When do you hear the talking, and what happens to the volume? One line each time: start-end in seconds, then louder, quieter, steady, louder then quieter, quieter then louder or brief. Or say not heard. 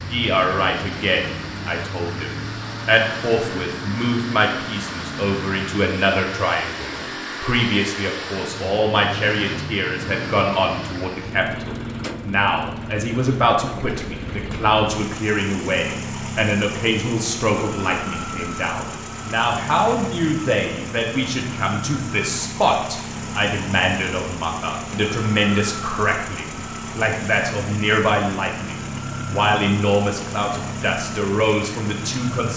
0.0-32.5 steady.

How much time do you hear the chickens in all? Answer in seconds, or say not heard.
not heard.